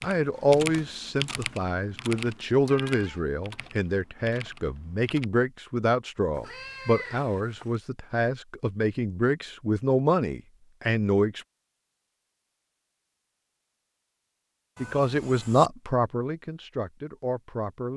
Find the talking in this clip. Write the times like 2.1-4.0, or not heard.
0.0-11.4, 14.8-17.9.